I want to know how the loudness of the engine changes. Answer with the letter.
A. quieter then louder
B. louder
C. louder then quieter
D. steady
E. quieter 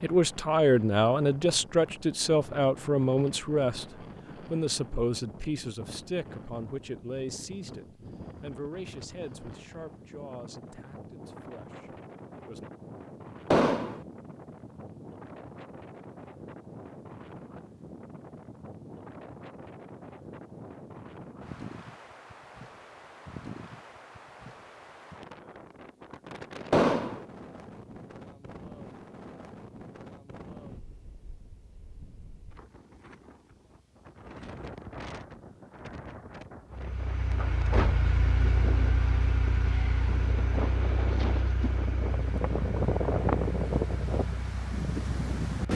E.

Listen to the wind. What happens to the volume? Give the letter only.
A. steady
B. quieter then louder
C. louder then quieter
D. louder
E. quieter
D.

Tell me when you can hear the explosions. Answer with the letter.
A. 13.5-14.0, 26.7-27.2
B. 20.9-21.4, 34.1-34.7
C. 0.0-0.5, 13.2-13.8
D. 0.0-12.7
A.